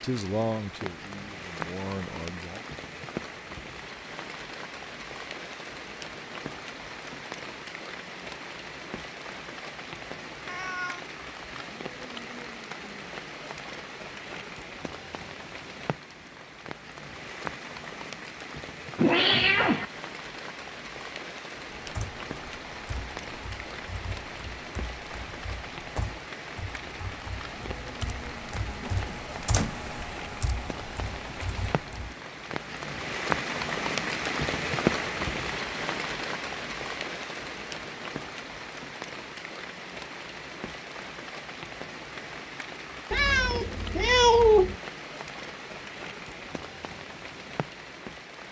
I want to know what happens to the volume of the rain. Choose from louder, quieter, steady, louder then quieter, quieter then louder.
louder then quieter.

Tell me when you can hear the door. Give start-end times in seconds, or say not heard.
28.8-29.8.